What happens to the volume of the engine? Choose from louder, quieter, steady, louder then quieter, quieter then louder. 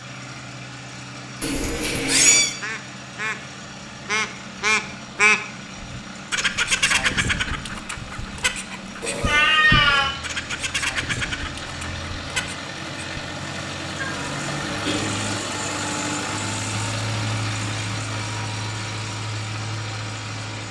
louder.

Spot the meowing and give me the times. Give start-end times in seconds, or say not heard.
1.4-2.5, 9.0-10.2, 14.0-15.4.